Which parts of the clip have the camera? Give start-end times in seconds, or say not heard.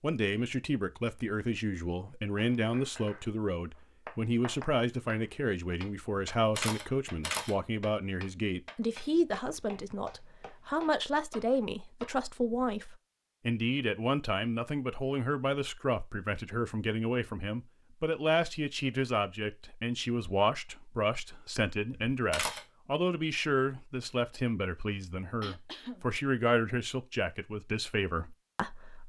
6.2-7.5, 21.9-22.6.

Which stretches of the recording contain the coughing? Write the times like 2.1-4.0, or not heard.
25.4-26.1.